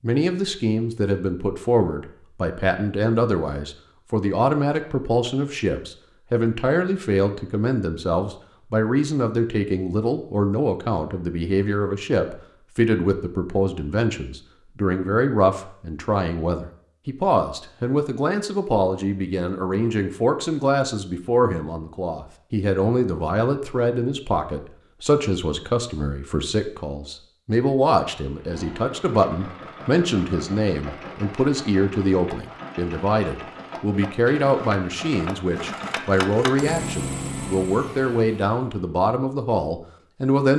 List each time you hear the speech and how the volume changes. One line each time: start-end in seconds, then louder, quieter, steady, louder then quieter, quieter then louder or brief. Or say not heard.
0.0-40.5 steady.